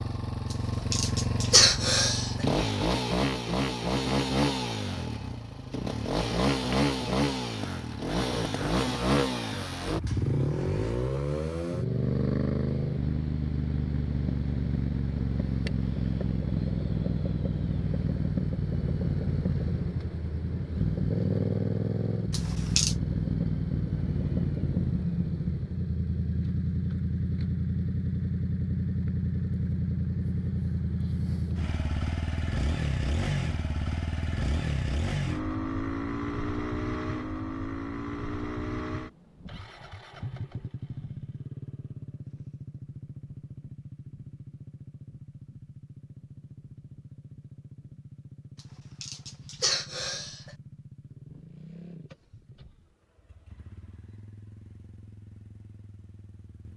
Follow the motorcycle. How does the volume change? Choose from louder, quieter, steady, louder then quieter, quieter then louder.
quieter.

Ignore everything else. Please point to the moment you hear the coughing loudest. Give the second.
2 s.